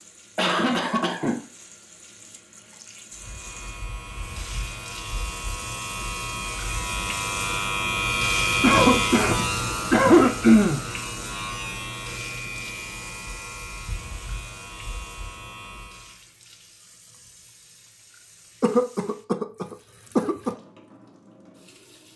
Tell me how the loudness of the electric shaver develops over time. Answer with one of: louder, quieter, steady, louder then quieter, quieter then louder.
louder then quieter.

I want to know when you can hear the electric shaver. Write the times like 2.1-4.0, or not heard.
3.1-16.2.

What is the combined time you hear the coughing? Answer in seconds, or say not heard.
5 s.